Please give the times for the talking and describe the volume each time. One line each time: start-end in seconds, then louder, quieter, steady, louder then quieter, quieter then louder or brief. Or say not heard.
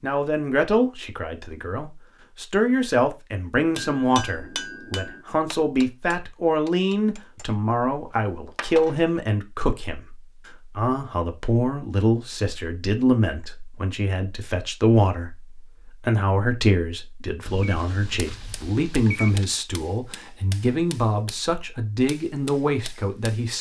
0.0-23.5 steady.